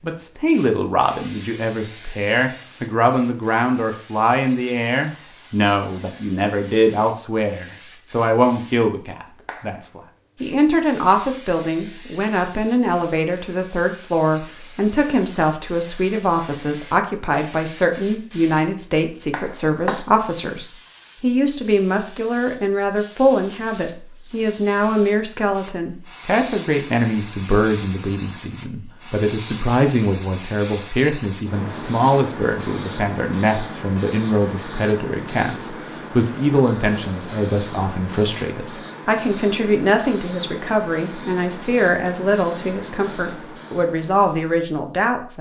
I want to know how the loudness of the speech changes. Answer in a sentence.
The volume of the speech stays about the same.